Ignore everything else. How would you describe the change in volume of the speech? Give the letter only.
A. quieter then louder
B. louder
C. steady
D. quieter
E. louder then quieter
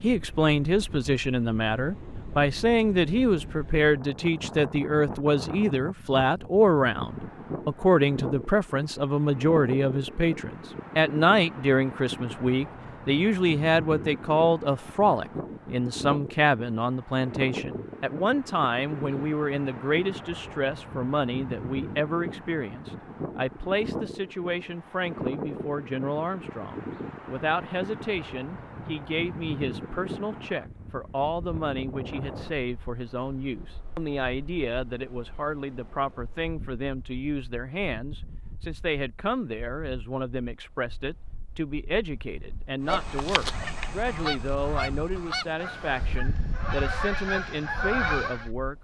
D.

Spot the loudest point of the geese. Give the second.
48 s.